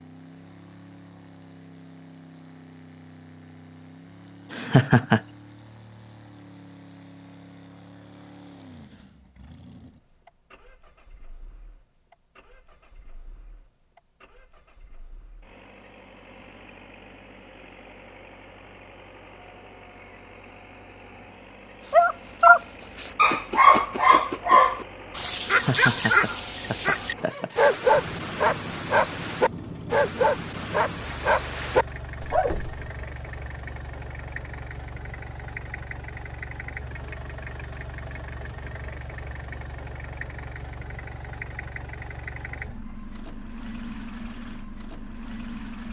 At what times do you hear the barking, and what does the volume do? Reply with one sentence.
The barking can be heard from 21.9 to 32.9 s, getting quieter.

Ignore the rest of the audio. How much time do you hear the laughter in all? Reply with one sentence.
You can hear the laughter for 3 seconds altogether.